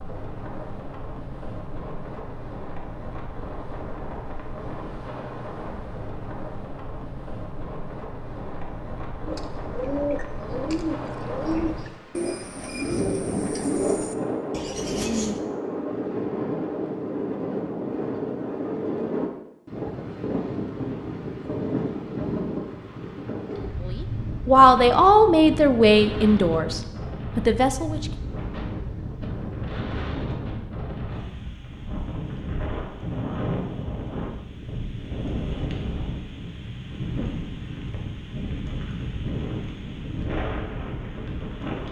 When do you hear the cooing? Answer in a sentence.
The cooing can be heard from 9.2 to 15.4 s.